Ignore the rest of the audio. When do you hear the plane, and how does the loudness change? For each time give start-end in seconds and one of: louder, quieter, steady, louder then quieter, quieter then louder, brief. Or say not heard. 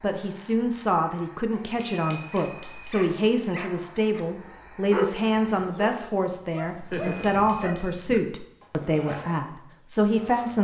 not heard.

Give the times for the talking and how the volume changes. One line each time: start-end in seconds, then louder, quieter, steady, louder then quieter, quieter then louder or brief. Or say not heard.
0.0-10.5 steady.